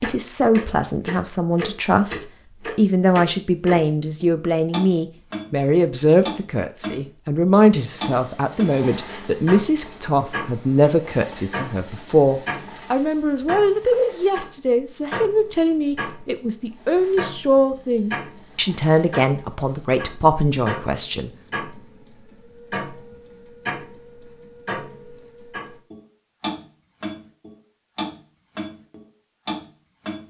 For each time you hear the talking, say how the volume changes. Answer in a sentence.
You can hear the talking from 0.0 to 21.3 s, at a steady volume.